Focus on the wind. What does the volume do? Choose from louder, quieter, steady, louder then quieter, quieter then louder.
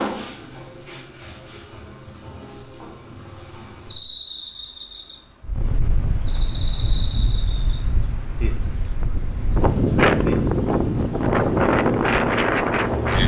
louder.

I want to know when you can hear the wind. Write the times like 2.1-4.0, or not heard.
5.4-13.2.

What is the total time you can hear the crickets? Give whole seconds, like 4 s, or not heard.
13 s.